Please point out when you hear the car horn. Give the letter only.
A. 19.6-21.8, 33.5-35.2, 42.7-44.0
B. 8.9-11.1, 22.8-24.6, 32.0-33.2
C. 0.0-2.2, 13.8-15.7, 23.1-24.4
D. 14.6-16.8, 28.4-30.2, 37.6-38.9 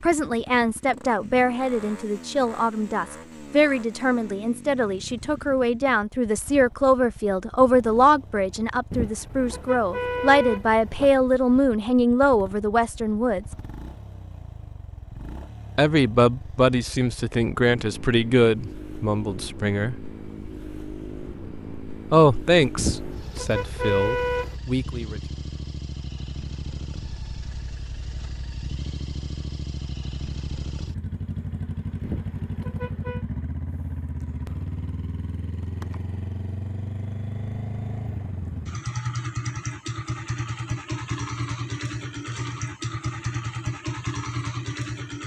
B.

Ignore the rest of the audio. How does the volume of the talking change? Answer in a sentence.
The loudness of the talking stays about the same.